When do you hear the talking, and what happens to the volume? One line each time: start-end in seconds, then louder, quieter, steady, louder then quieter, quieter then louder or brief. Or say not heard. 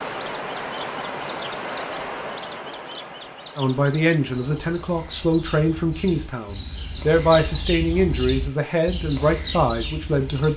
3.5-10.5 steady.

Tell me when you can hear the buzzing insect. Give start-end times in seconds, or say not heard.
not heard.